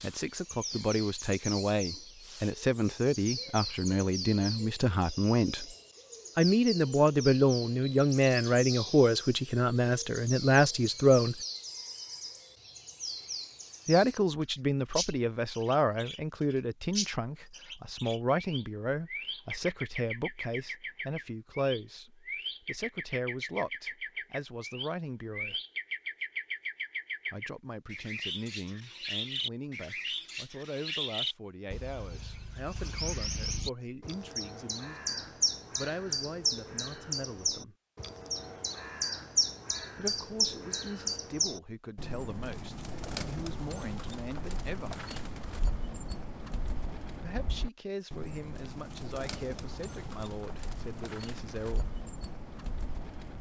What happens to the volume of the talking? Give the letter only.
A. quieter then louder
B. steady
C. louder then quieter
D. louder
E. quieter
E.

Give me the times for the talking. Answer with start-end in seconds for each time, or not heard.
0.0-5.7, 6.3-11.3, 13.8-25.6, 27.3-37.8, 40.0-45.0, 47.2-52.0.